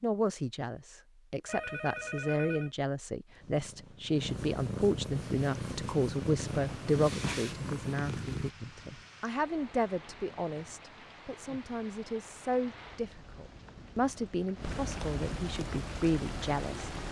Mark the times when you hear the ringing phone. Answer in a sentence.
The ringing phone can be heard from 1.4 to 2.7 s.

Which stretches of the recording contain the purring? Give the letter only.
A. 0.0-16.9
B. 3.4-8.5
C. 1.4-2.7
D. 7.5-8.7
B.